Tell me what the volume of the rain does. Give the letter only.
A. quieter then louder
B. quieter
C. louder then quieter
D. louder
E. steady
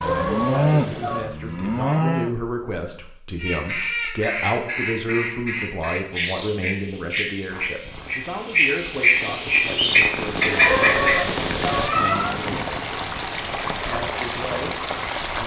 D.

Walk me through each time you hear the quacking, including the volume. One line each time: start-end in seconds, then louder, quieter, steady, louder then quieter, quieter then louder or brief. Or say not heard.
3.4-11.3 louder.